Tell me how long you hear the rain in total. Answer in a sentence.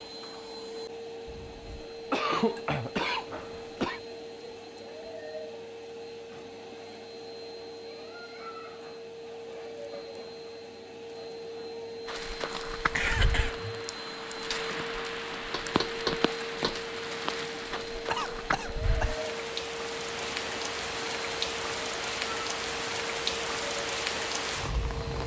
You can hear the rain for 13 seconds altogether.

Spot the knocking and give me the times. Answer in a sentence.
You can hear the knocking from 15.5 to 16.9 s.